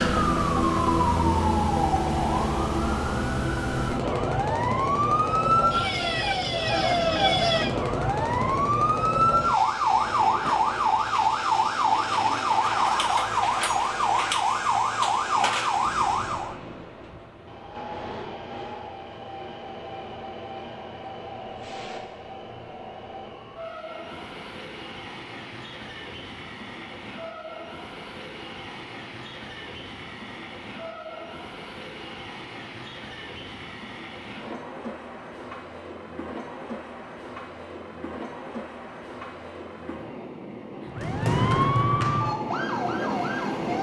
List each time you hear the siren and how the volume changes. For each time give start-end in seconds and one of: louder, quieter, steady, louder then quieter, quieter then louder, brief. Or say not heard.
0.0-16.6 steady
40.9-43.7 brief.